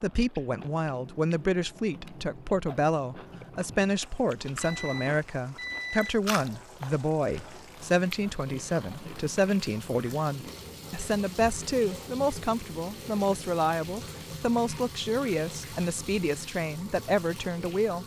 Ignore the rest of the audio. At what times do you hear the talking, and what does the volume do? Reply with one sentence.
You can hear the talking from 0.0 to 18.0 s, at a steady volume.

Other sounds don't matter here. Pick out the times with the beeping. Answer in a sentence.
You can hear the beeping from 4.6 to 6.2 s.